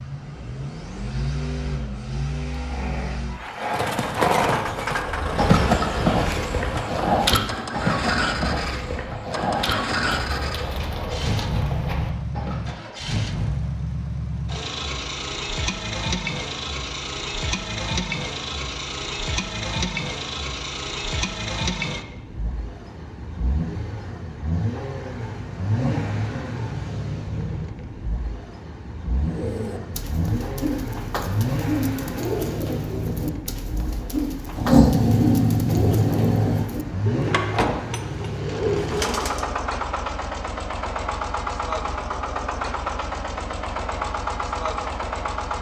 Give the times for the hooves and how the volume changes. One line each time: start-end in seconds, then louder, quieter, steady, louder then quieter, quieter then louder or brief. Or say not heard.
3.6-12.8 quieter.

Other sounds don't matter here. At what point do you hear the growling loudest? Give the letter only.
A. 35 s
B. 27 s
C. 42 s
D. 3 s
A.